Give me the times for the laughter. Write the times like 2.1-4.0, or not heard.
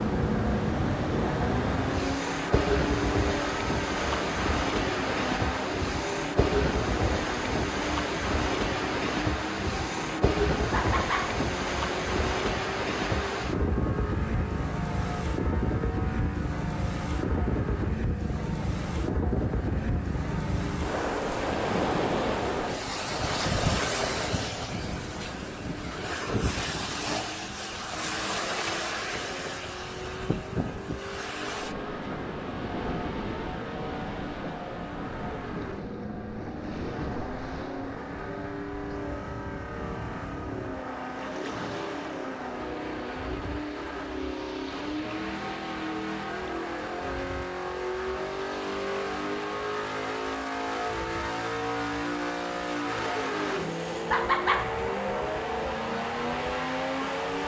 10.7-11.2, 54.1-54.6.